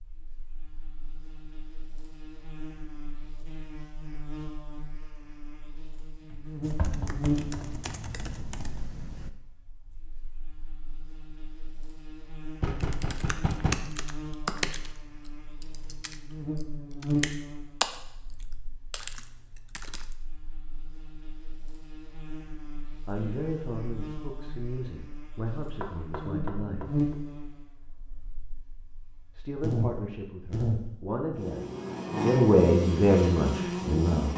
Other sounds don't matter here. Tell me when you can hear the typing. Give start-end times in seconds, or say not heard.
6.6-9.3, 12.8-20.1.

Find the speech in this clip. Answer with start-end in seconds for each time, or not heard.
23.1-27.0, 29.4-34.3.